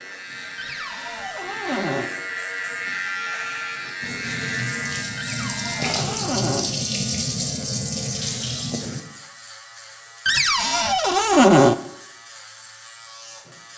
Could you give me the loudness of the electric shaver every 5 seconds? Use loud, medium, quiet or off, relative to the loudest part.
loud, medium, quiet.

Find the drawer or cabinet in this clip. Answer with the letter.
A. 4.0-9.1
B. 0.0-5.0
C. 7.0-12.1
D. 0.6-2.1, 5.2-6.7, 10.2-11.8
D.